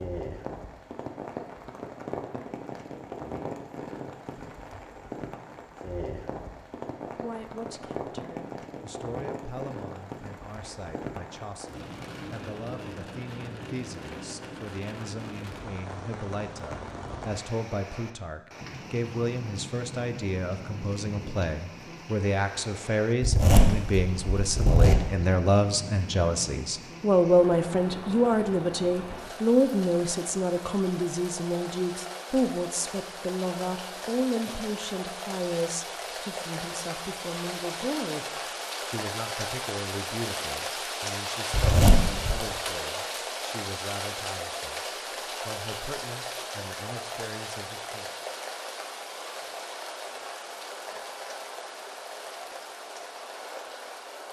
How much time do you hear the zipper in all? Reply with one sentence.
You can hear the zipper for 3 seconds altogether.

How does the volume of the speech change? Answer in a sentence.
The loudness of the speech goes up, then down.